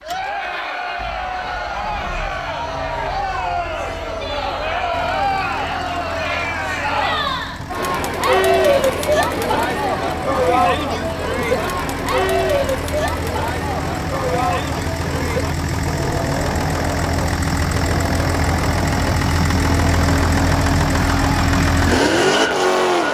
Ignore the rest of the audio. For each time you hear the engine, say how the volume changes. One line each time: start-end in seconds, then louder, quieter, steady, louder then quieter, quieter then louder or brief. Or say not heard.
0.0-23.1 louder.